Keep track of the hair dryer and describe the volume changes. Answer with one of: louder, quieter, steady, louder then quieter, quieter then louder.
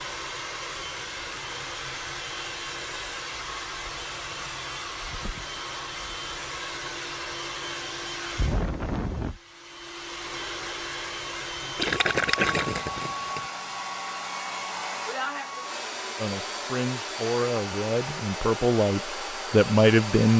steady.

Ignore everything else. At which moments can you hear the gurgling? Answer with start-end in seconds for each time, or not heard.
11.8-13.4.